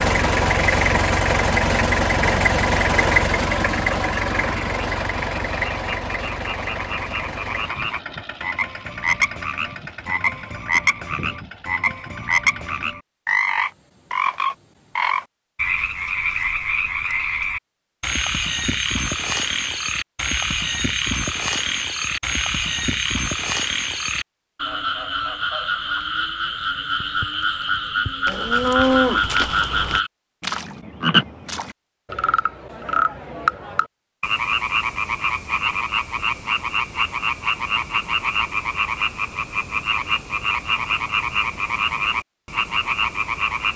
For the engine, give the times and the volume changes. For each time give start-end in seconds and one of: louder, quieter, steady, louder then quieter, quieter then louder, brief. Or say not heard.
0.0-12.9 quieter.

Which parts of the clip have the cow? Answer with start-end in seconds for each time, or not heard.
28.2-30.0.